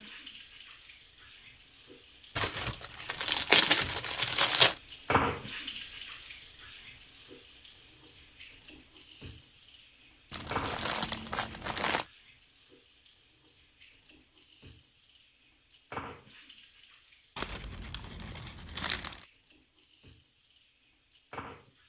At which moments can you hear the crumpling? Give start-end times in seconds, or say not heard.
2.4-4.8, 10.3-12.1, 17.4-19.2.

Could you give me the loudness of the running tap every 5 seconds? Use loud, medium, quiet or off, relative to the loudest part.
medium, loud, medium, medium, quiet.